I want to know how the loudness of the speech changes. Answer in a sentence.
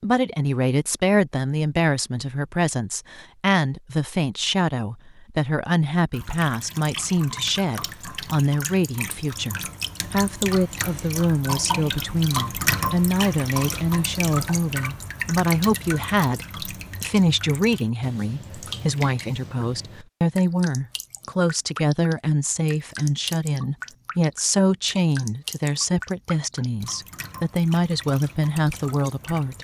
The volume of the speech stays about the same.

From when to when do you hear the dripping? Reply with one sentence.
You can hear the dripping from 6.1 to 29.6 s.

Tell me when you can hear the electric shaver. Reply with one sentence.
The electric shaver can't be heard in this clip.